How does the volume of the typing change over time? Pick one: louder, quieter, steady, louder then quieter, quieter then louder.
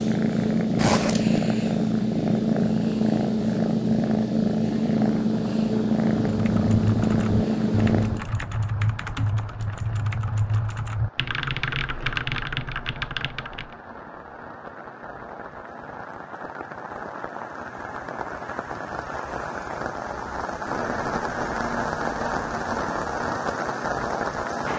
steady.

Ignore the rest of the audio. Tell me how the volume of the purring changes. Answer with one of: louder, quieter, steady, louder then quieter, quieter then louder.
steady.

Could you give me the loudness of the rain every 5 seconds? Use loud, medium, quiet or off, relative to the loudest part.
off, quiet, quiet, medium, loud.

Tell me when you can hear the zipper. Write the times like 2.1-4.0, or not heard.
0.8-1.4.